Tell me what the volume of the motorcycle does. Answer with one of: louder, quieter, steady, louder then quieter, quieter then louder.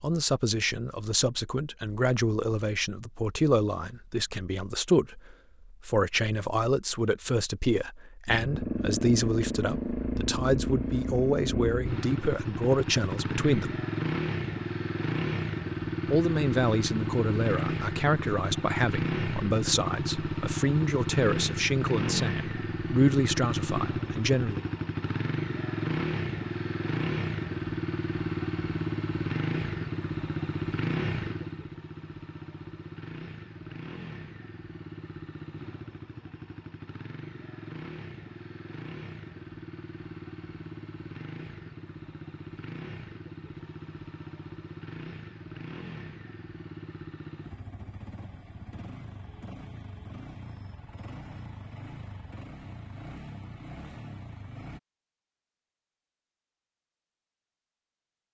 quieter.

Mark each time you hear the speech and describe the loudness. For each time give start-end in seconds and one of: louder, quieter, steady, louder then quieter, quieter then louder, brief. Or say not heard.
0.0-13.8 steady
16.1-24.6 steady.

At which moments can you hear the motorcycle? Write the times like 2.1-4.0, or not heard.
8.2-54.8.